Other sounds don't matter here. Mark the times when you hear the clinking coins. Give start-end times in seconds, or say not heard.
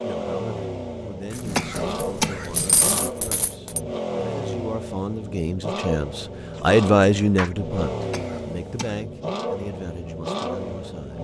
1.3-3.8, 6.5-7.5.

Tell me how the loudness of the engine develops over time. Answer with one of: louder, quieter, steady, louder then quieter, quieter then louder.
steady.